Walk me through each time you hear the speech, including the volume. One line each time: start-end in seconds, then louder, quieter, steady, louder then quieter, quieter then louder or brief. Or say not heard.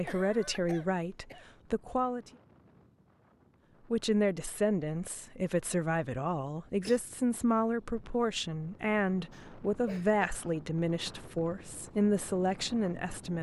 0.0-2.2 brief
3.9-13.3 steady.